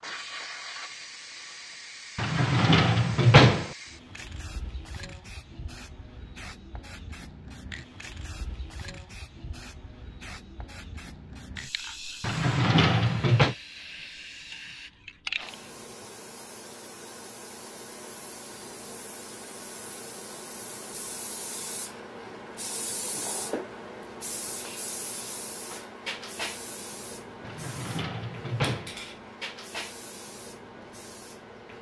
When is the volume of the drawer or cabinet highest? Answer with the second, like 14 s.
3 s.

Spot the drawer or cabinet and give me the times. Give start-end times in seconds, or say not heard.
2.1-3.7, 12.2-13.6, 27.4-28.9.